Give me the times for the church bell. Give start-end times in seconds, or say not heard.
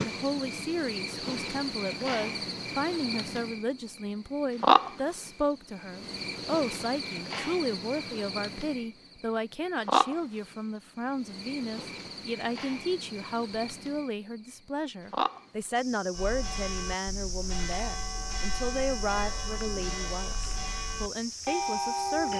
16.1-22.3.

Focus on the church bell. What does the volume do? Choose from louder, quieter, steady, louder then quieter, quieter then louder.
louder.